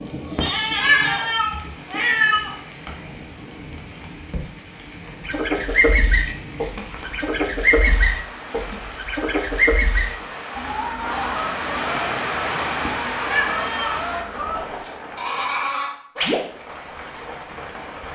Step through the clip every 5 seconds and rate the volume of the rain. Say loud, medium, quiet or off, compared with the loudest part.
medium, medium, loud, medium.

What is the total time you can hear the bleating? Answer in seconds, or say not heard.
3 s.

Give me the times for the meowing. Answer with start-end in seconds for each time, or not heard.
0.3-2.5, 12.8-14.0.